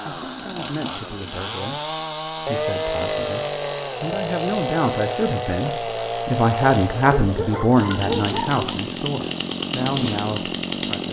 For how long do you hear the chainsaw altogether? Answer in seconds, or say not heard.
11 s.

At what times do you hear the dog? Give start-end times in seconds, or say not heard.
7.2-8.8.